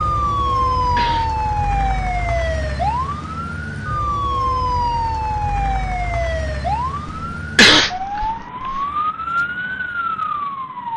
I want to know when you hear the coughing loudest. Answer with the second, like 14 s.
8 s.